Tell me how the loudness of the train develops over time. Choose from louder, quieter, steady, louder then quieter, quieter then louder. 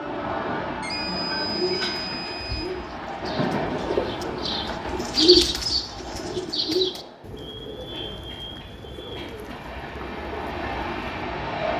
quieter then louder.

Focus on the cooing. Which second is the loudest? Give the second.
5 s.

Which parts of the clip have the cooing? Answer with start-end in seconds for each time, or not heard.
1.5-11.2.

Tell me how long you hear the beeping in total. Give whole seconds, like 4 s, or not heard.
4 s.